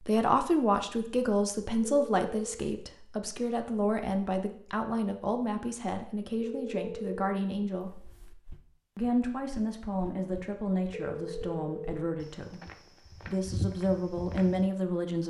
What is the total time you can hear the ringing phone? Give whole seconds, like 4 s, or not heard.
3 s.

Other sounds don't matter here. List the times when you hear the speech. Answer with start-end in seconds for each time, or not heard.
0.0-8.0, 8.9-15.2.